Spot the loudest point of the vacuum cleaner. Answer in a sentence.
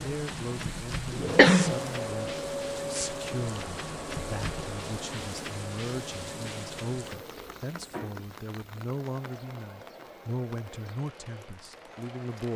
The volume of the vacuum cleaner peaks at 2 seconds.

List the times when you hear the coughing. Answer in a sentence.
The coughing can be heard from 0.3 to 1.8 s.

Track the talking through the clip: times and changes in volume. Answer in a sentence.
The talking can be heard from 0.0 to 12.5 s, at a steady volume.